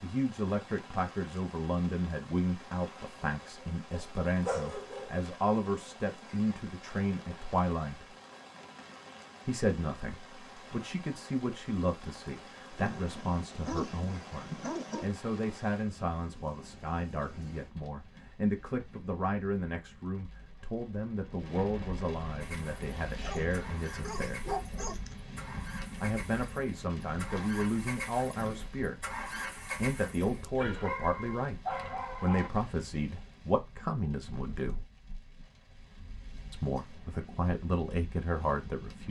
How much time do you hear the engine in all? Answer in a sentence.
The engine can be heard for 8 seconds in total.